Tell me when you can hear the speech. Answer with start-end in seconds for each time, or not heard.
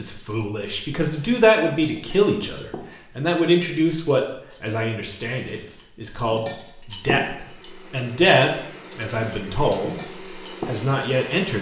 0.0-11.5.